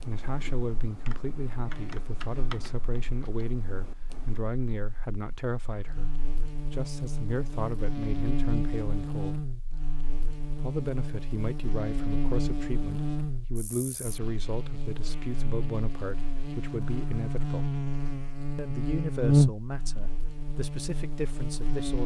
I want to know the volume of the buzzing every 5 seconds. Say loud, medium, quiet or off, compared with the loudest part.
quiet, medium, medium, loud, medium.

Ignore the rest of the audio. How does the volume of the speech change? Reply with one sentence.
The volume of the speech stays about the same.